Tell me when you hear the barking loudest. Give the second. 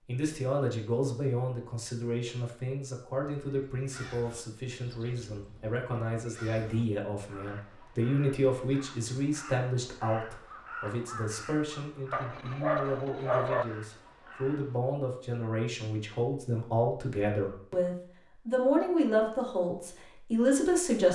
13 s.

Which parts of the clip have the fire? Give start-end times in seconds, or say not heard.
not heard.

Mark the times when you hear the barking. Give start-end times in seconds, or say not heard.
12.1-13.7.